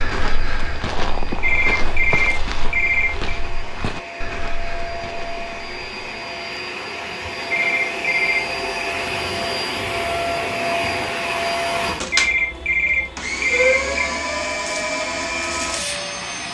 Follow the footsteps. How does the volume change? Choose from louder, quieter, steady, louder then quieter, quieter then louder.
quieter.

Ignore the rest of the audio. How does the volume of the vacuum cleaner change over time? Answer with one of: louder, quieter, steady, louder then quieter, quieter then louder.
louder.